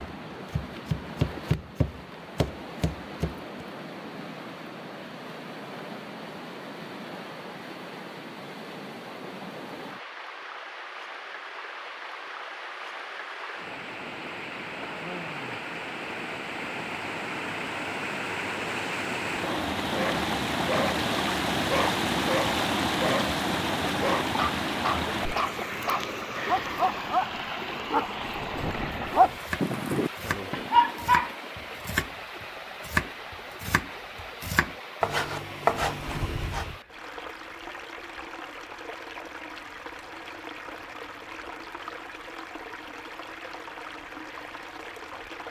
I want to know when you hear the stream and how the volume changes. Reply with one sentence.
You can hear the stream from 0.0 to 45.4 s, getting louder then quieter.